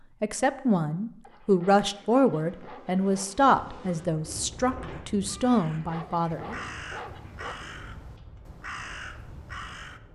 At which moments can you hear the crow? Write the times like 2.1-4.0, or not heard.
4.9-10.0.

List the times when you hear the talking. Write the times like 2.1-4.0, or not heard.
0.2-6.5.